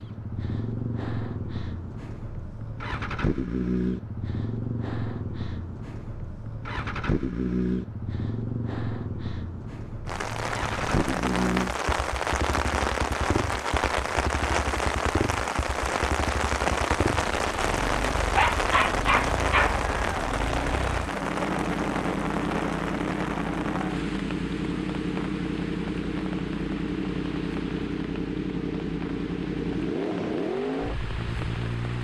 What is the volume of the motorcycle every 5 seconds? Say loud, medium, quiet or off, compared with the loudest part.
loud, loud, loud, medium, loud, loud, loud.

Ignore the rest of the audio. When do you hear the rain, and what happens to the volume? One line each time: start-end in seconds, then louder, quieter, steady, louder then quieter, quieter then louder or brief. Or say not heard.
10.1-31.9 quieter.